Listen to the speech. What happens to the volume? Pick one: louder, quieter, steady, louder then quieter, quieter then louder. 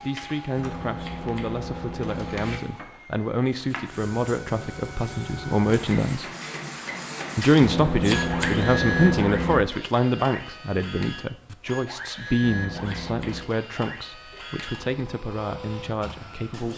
louder then quieter.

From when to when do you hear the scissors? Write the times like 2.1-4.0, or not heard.
0.6-2.6, 7.6-9.7, 12.4-13.4.